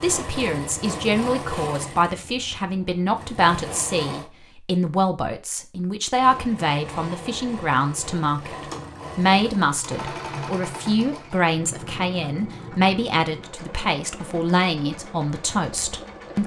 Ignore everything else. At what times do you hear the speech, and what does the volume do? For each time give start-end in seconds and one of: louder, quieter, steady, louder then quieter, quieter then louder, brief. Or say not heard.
0.0-16.4 steady.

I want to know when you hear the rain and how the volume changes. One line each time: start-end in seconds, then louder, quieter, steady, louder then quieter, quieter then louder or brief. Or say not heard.
not heard.